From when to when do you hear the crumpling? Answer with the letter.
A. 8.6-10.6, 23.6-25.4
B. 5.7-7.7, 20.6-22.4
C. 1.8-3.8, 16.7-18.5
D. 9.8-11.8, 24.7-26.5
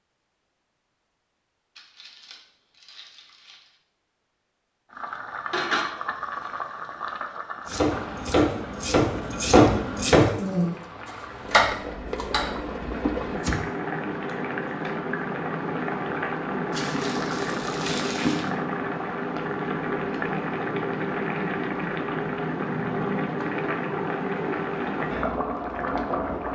C.